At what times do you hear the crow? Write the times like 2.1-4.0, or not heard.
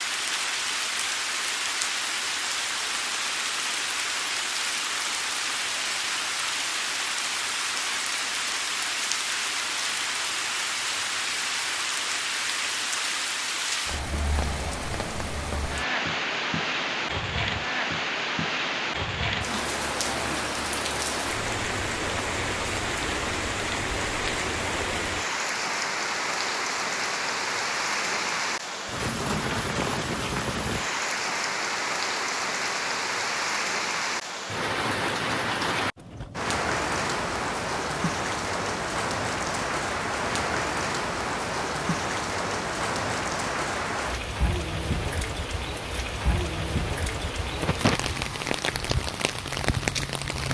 not heard.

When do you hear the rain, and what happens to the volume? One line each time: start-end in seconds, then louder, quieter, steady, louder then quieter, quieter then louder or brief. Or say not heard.
0.0-50.4 steady.